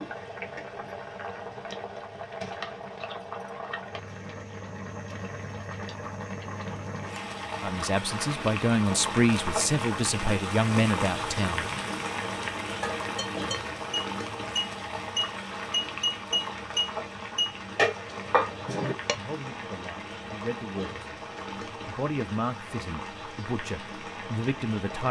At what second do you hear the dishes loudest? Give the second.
18 s.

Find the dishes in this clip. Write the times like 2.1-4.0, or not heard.
12.8-19.1.